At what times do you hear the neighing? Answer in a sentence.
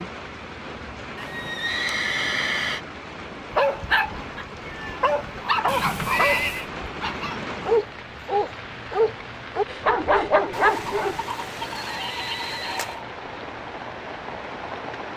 The neighing can be heard from 1.1 to 2.8 s, from 5.7 to 6.7 s and from 10.5 to 13.1 s.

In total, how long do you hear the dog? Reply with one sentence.
You can hear the dog for 8 seconds altogether.